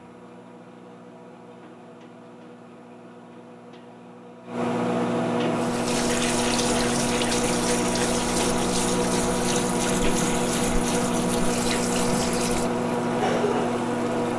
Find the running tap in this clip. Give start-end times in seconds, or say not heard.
5.5-14.1.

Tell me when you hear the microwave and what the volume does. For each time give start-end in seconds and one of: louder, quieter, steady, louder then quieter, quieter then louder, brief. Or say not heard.
0.0-14.3 louder.